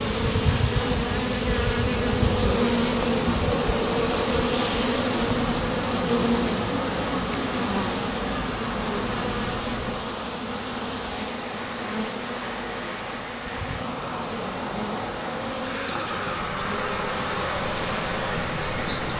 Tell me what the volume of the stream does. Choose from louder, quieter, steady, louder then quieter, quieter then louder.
steady.